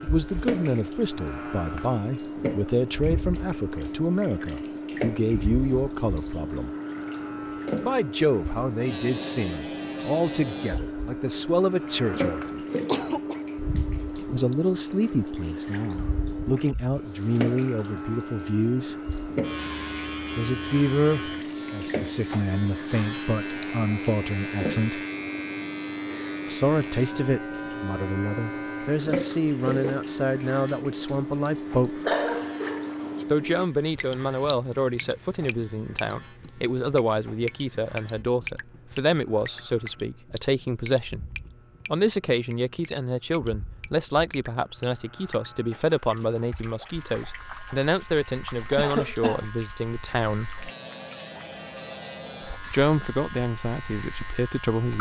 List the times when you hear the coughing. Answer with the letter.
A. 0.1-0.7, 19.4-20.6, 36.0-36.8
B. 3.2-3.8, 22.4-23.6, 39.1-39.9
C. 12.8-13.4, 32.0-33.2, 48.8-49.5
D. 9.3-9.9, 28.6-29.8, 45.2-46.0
C.